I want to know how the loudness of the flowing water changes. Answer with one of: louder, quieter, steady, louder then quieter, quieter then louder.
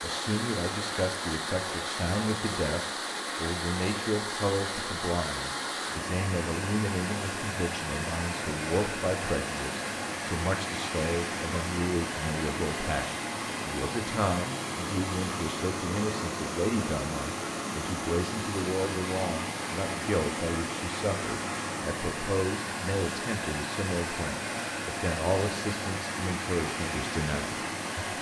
steady.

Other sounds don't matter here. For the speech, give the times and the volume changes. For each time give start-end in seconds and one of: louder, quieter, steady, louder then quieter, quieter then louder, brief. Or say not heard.
0.0-28.0 steady.